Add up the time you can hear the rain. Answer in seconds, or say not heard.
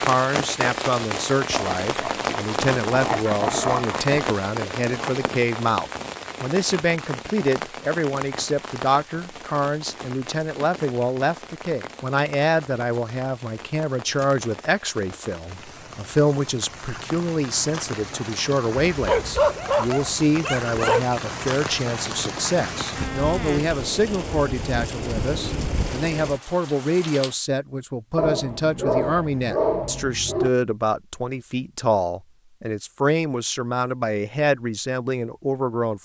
27 s.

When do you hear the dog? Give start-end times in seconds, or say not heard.
1.5-4.3, 18.9-21.0, 28.1-30.5.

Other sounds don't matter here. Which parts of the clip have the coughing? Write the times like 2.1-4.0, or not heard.
not heard.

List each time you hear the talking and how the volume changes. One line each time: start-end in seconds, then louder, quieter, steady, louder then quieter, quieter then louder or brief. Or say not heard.
0.0-36.0 steady.